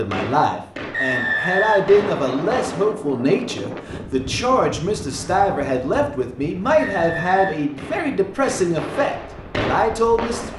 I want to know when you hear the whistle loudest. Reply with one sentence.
The loudest moment of the whistle is at 1 second.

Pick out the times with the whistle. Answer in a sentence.
The whistle can be heard from 0.9 to 2.6 s and from 6.8 to 7.6 s.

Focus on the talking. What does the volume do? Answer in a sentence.
The loudness of the talking stays about the same.